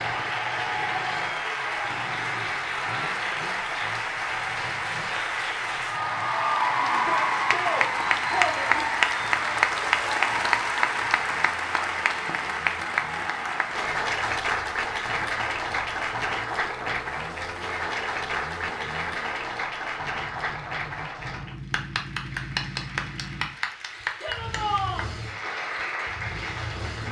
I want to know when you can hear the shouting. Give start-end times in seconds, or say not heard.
6.9-8.8, 24.2-25.1.